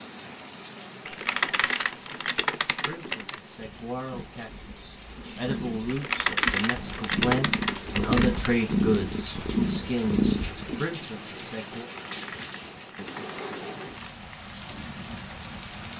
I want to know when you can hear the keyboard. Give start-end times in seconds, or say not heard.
1.1-3.4, 5.8-8.5, 11.9-14.2.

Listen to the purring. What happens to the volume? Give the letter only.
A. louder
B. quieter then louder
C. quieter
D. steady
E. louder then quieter
A.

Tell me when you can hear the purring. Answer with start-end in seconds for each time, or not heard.
3.5-10.8.